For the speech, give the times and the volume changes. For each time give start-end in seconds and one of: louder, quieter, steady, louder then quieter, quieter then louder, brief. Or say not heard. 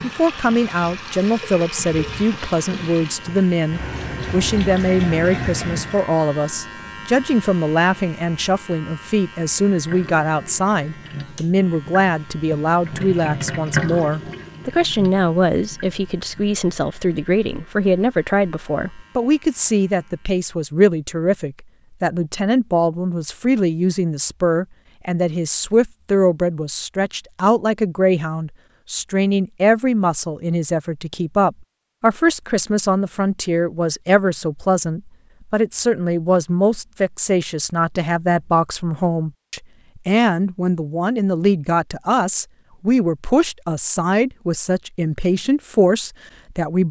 0.0-46.8 steady.